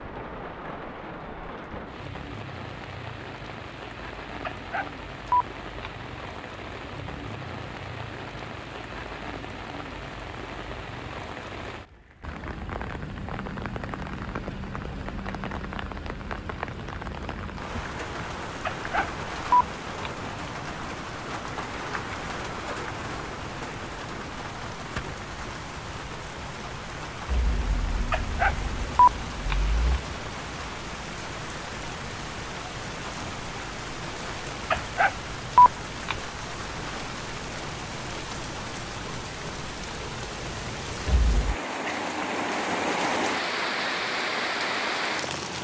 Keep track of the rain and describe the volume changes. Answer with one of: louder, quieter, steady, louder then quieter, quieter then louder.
louder.